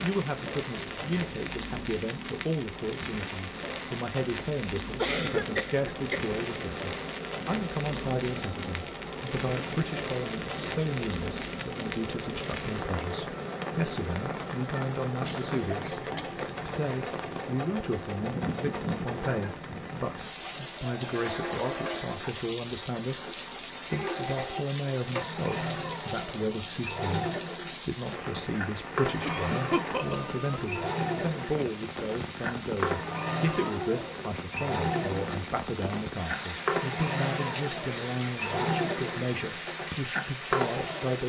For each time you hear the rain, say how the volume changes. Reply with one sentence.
The rain can be heard from 0.0 to 41.2 s, at a steady volume.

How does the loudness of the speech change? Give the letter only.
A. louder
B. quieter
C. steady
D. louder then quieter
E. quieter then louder
C.